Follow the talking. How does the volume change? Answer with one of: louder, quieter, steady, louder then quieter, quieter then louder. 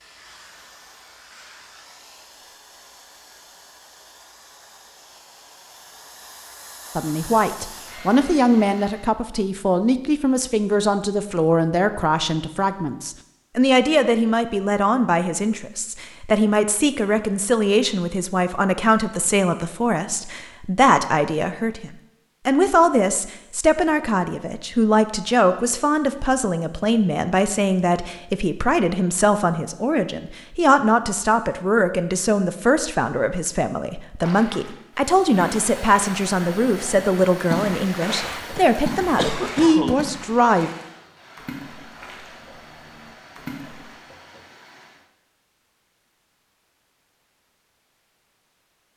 steady.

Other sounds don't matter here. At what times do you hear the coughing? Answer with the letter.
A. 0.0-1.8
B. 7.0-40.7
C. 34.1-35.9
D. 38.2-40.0
D.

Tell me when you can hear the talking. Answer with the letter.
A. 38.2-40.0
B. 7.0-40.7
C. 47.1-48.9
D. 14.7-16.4
B.